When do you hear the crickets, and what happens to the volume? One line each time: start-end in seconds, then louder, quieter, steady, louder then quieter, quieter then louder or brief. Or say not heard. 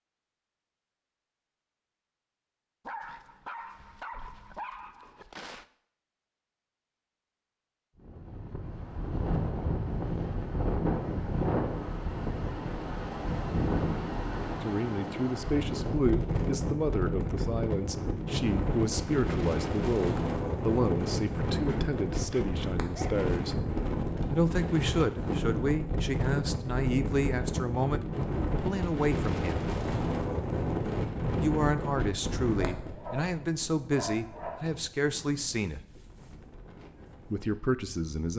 not heard.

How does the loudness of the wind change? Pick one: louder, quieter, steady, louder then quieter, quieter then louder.
quieter.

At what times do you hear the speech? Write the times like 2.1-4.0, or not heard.
14.6-23.6, 24.3-29.7, 31.4-35.8, 37.3-38.3.